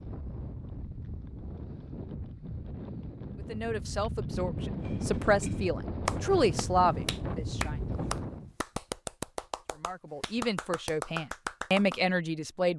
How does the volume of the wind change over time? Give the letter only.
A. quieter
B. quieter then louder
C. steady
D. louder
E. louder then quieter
D.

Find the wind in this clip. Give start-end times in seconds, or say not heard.
0.0-8.6.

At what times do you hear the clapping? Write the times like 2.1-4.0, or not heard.
4.8-12.0.